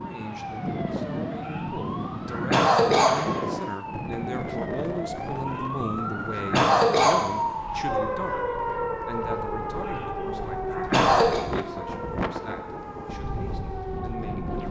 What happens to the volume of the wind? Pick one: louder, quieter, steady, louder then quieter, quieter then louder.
quieter then louder.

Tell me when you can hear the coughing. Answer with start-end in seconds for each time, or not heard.
1.4-3.1, 5.5-7.2, 9.8-11.4.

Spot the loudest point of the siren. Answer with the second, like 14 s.
8 s.